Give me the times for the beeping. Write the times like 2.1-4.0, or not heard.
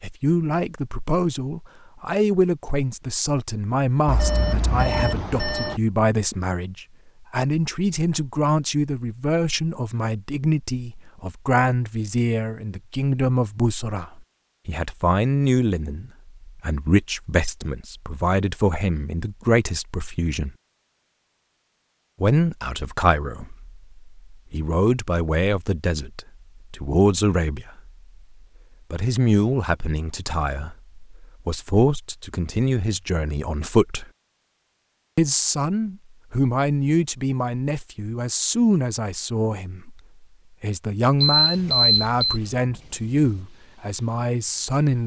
4.0-5.8, 41.2-42.4.